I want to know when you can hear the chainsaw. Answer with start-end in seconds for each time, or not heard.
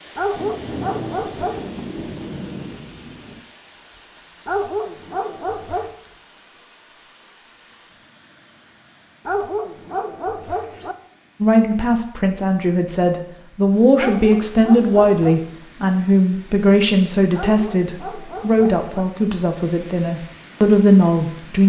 not heard.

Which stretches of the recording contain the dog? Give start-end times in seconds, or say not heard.
0.1-1.6, 4.5-6.0, 9.2-10.9, 13.9-15.4, 17.3-18.9.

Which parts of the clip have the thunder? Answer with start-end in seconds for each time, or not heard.
0.3-3.4.